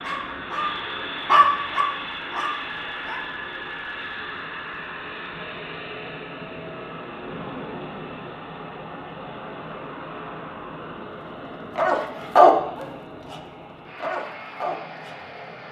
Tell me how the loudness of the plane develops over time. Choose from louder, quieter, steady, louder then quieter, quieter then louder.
quieter.